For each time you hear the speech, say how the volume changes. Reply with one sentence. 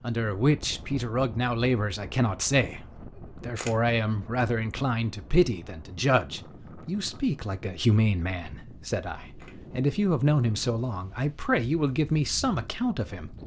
You can hear the speech from 0.0 to 13.3 s, at a steady volume.